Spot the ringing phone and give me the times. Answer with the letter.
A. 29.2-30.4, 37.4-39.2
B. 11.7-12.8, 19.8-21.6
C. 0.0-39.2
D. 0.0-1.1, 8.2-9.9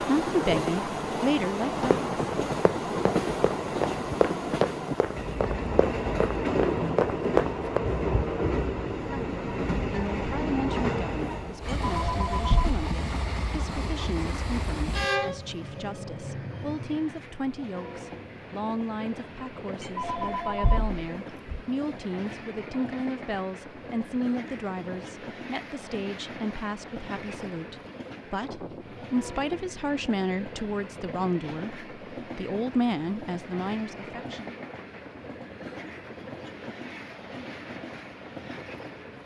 B.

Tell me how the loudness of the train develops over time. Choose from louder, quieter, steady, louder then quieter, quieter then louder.
quieter.